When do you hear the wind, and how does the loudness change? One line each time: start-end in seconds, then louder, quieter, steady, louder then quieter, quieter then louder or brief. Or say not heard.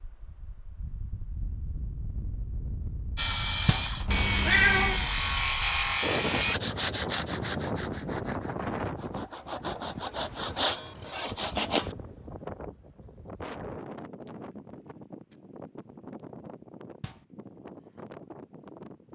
0.0-19.1 louder then quieter.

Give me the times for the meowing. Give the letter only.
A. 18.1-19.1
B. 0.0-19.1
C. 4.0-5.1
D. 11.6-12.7
C.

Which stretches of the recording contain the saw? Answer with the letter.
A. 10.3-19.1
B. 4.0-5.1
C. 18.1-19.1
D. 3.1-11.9
D.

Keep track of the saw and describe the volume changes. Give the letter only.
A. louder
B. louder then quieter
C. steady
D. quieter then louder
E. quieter
D.